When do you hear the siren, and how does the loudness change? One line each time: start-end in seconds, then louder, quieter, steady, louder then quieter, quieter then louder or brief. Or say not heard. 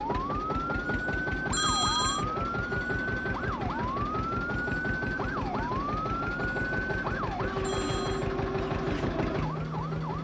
0.1-10.1 steady.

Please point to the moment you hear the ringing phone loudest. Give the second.
2 s.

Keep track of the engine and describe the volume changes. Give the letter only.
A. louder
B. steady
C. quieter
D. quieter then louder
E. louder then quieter
B.